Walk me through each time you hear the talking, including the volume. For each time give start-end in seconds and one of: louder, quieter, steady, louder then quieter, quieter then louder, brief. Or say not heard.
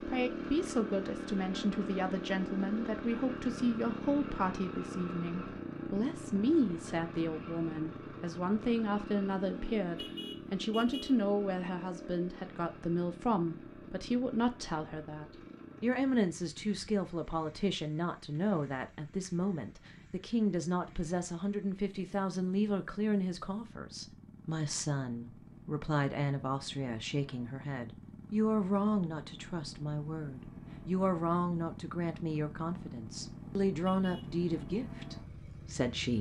0.0-36.1 steady.